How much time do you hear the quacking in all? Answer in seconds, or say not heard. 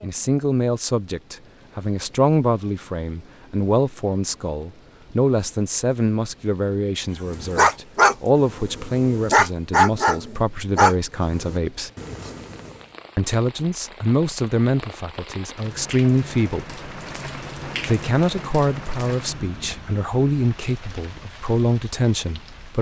not heard.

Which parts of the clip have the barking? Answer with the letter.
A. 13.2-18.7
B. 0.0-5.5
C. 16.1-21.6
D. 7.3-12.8
D.